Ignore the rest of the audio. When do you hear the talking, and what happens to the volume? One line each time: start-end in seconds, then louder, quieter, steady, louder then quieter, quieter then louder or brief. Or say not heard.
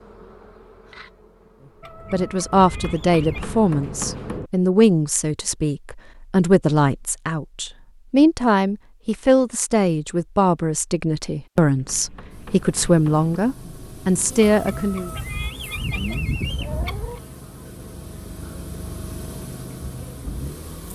2.1-15.1 steady.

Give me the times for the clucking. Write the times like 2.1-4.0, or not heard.
1.8-3.5, 14.4-17.2.